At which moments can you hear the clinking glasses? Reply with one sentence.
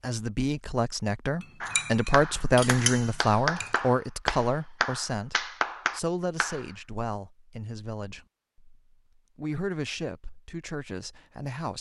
You can hear the clinking glasses from 1.4 to 3.8 s.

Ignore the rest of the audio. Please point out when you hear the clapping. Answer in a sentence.
You can hear the clapping from 1.6 to 6.7 s.